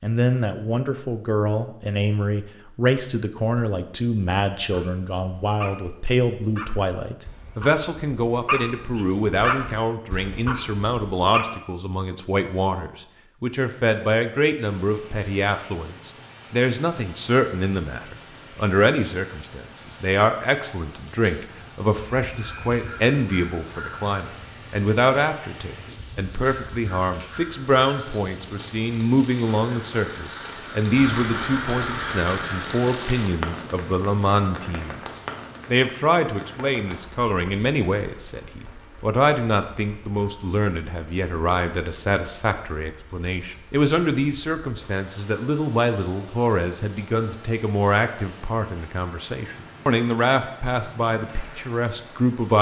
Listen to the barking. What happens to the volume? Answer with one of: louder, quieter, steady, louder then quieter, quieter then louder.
louder then quieter.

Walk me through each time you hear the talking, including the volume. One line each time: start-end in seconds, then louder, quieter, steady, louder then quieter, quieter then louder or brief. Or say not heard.
0.0-52.5 steady.